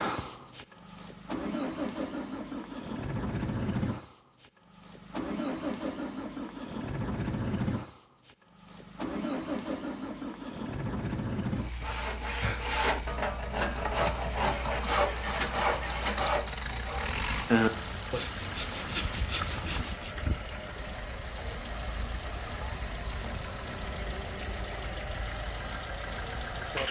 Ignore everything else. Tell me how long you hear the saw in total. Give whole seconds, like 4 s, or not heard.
8 s.